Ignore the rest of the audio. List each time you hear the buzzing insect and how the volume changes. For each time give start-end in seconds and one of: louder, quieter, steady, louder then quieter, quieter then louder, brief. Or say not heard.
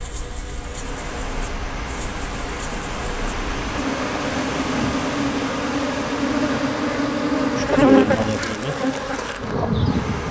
0.0-10.2 louder.